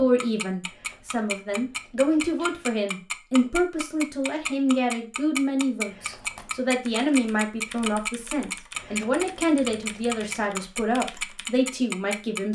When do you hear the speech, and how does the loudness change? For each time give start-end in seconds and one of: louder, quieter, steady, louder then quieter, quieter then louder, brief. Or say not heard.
0.0-12.5 steady.